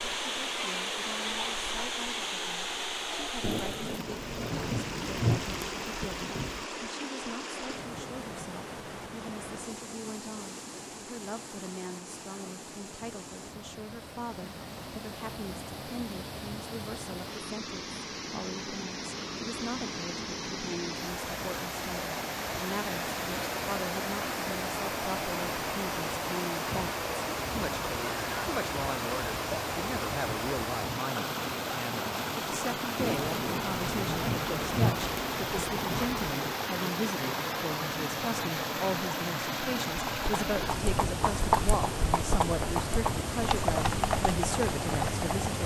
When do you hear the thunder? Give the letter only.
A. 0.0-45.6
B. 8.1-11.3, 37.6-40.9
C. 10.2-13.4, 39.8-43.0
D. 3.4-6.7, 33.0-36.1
D.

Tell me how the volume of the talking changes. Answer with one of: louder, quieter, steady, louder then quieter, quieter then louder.
louder.